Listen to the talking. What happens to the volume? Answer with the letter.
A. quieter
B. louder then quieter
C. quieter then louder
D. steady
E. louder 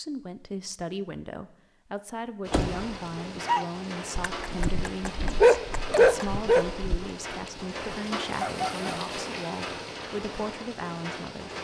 D.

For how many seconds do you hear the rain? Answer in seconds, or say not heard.
9 s.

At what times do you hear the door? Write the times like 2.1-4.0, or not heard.
2.5-3.4.